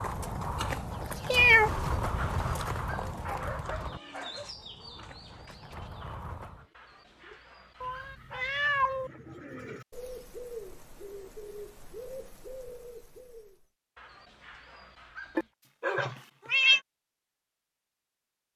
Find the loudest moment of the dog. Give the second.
3 s.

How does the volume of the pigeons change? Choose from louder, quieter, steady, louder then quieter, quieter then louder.
quieter then louder.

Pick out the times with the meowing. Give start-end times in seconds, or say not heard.
1.2-2.6, 7.8-9.1, 15.3-16.8.